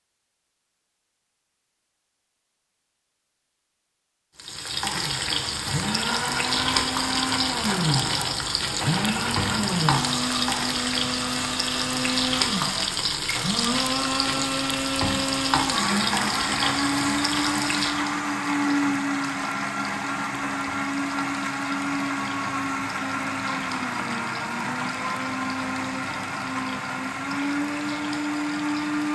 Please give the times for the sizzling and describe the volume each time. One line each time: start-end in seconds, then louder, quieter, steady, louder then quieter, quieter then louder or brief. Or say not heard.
4.3-29.0 quieter.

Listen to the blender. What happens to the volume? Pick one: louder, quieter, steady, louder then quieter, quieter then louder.
steady.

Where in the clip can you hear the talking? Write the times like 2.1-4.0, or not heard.
not heard.